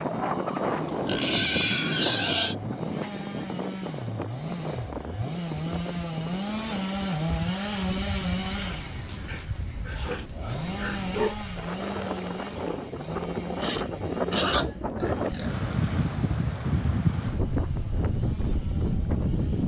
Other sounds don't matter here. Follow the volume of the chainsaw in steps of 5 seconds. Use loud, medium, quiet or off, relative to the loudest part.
medium, loud, medium, quiet.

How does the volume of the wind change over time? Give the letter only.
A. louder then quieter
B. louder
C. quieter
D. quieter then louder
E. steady
D.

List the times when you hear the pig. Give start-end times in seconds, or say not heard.
0.7-2.5, 9.1-11.3, 13.6-15.7.